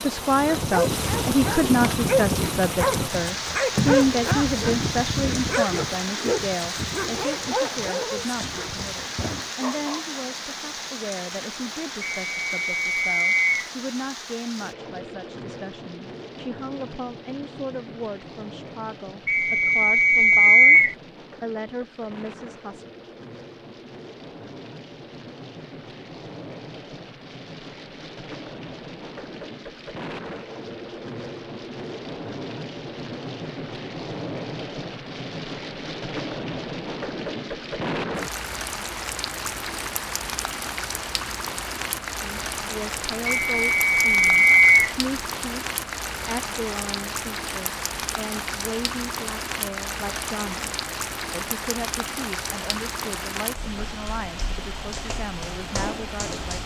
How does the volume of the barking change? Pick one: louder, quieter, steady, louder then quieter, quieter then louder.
quieter.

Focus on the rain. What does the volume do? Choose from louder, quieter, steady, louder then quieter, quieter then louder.
quieter then louder.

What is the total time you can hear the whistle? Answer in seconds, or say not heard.
5 s.